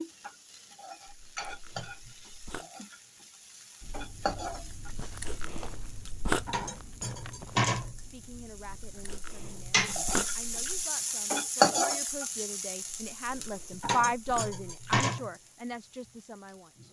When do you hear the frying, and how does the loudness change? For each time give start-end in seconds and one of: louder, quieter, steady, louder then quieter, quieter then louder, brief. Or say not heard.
0.0-16.8 louder then quieter.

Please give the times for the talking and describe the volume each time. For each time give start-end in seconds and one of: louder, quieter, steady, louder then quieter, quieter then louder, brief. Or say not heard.
8.0-16.8 louder then quieter.